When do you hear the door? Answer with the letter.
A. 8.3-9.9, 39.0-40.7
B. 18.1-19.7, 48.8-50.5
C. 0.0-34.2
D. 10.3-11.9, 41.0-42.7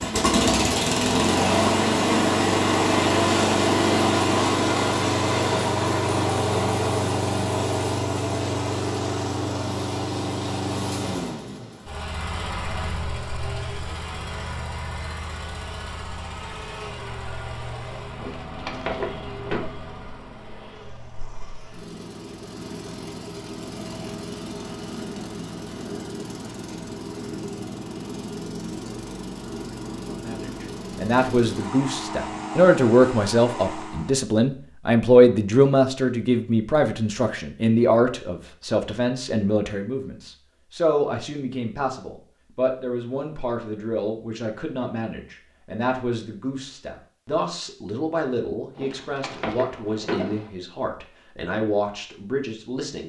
B.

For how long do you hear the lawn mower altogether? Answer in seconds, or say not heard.
34 s.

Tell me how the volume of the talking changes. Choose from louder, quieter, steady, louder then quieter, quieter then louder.
quieter.